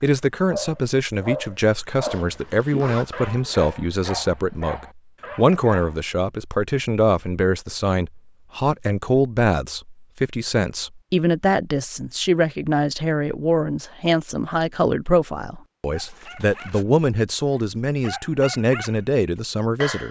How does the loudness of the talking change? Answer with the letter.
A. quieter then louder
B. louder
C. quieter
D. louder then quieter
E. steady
E.